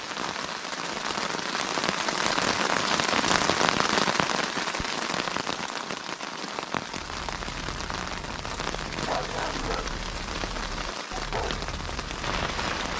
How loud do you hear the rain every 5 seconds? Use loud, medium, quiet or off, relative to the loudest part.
loud, medium, medium.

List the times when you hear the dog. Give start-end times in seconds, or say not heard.
6.9-12.9.